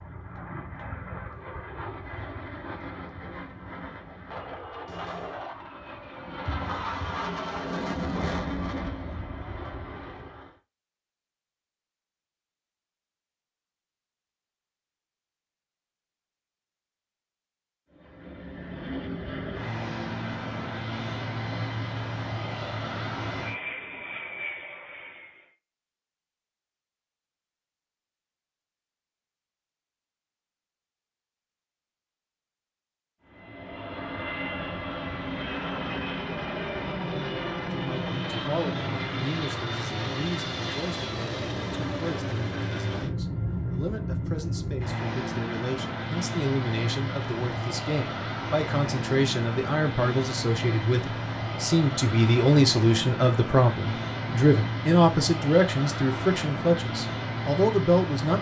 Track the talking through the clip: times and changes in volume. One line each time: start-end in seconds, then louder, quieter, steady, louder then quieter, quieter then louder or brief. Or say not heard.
37.7-58.3 louder.